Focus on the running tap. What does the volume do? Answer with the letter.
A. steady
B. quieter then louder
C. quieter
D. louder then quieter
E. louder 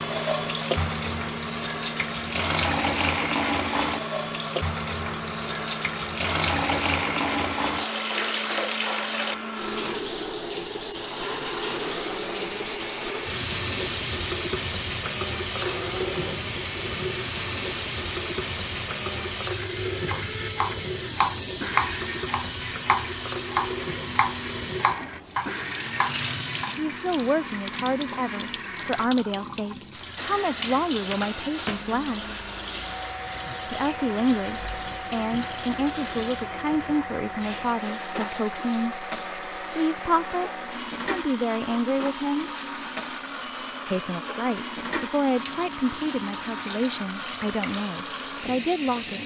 C.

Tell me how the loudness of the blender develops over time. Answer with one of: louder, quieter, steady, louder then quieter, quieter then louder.
steady.